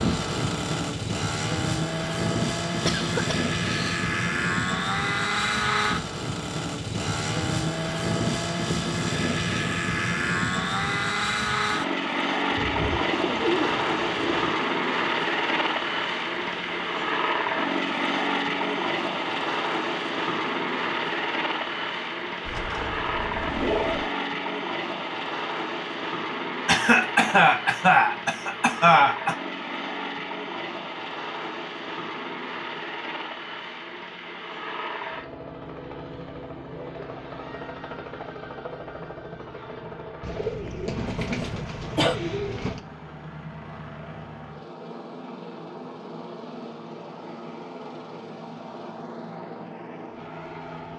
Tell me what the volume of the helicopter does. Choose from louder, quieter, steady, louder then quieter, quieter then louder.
quieter.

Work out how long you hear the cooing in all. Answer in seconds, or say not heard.
6 s.